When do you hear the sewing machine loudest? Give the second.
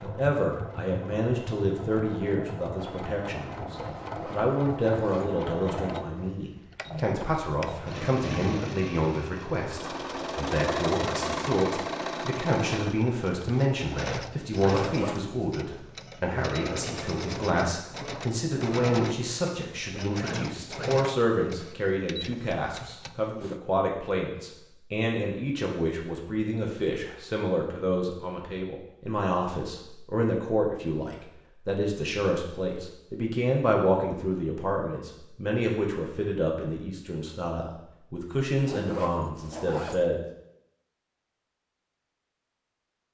11 s.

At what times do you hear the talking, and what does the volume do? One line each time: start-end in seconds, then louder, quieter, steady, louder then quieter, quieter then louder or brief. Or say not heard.
0.0-40.2 steady.